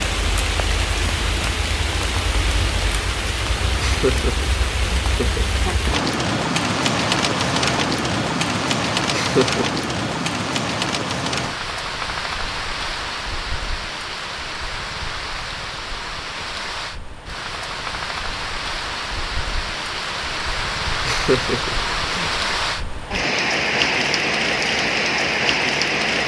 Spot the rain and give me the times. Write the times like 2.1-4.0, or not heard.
0.0-26.2.